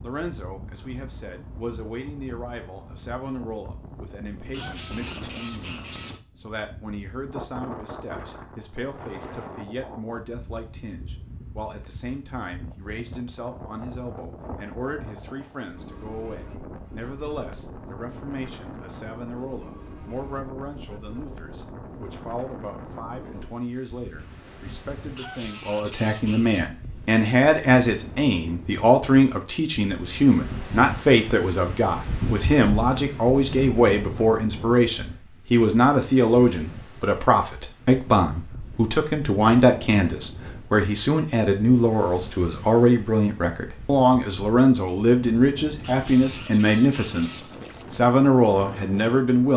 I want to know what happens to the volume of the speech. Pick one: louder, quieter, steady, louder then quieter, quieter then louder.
louder.